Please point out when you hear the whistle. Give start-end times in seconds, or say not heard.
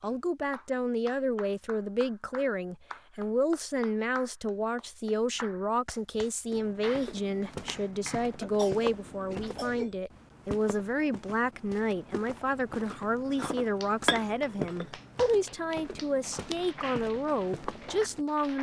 not heard.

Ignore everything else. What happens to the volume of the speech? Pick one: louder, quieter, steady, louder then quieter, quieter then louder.
steady.